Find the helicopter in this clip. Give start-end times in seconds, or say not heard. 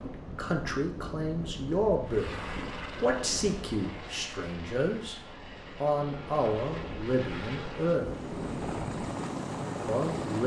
2.0-10.4.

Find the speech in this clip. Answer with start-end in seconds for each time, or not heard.
0.0-2.3, 3.0-5.2, 5.8-8.1, 9.8-10.4.